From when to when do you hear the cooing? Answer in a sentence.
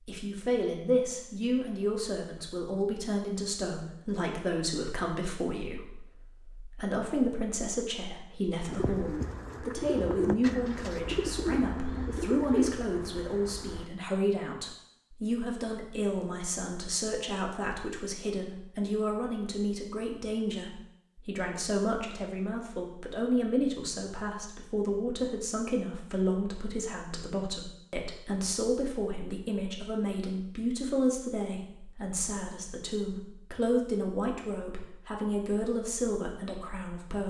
The cooing can be heard from 8.7 to 13.8 s.